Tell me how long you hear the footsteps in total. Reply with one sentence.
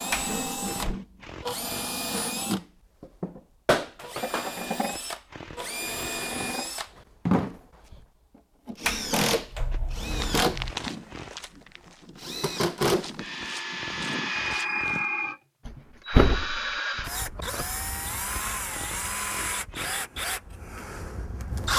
The footsteps can be heard for 5 seconds in total.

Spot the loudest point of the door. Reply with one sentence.
The volume of the door peaks at 16 seconds.